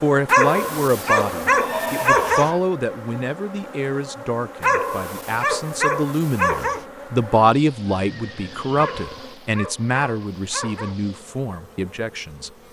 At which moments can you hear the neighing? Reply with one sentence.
The neighing can be heard from 1.6 to 2.6 s and from 7.9 to 8.9 s.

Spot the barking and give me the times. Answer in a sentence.
You can hear the barking from 0.2 to 2.5 s, from 4.6 to 6.8 s and from 8.8 to 11.0 s.